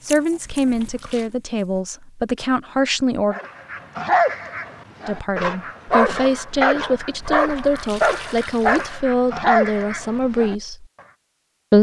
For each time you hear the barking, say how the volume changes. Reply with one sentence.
You can hear the barking from 3.3 to 10.6 s, at a steady volume.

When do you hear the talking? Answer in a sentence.
The talking can be heard from 0.0 to 3.4 s and from 5.0 to 10.8 s.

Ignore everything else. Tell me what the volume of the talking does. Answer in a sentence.
The loudness of the talking stays about the same.